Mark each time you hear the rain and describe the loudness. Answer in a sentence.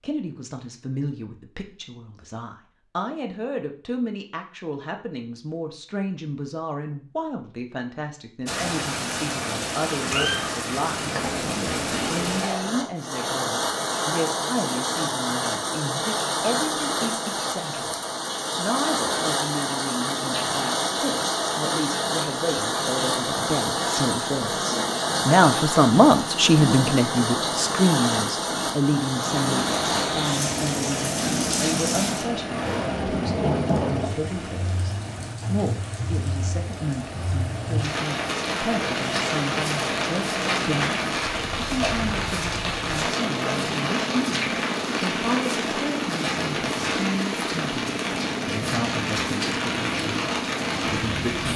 The rain can be heard from 8.4 to 51.5 s, at a steady volume.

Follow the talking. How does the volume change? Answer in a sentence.
The loudness of the talking goes up, then down.